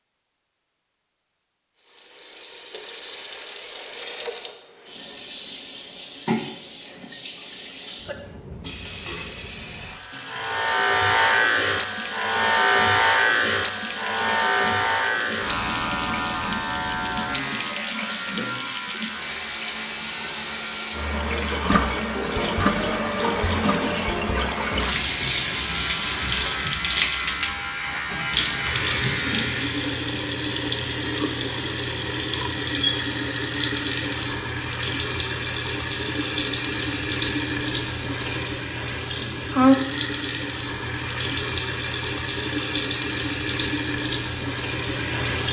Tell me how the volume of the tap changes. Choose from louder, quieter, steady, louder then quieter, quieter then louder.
louder.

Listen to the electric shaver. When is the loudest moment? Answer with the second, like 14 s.
13 s.